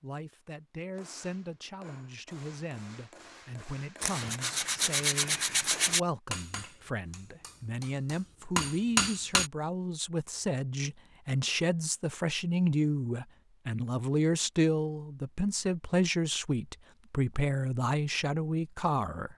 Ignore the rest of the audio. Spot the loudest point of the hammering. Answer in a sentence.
The loudest moment of the hammering is at 9 seconds.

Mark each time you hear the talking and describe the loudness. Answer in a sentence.
The talking can be heard from 0.0 to 19.3 s, getting louder.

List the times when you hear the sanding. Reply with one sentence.
The sanding can be heard from 4.0 to 6.0 s.